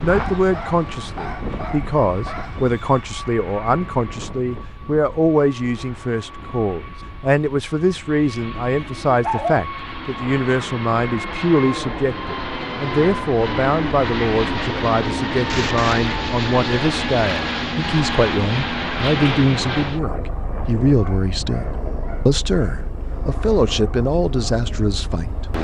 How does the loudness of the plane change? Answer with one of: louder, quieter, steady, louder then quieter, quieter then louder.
louder then quieter.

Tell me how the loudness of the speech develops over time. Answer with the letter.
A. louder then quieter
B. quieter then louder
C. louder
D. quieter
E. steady
E.